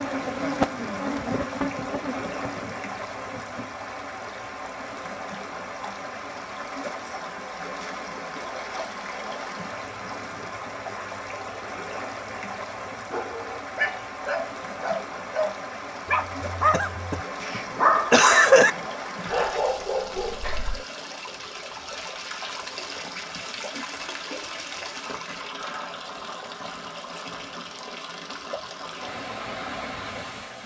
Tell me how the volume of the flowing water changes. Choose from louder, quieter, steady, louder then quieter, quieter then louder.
steady.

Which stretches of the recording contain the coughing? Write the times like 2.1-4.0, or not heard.
16.7-18.7.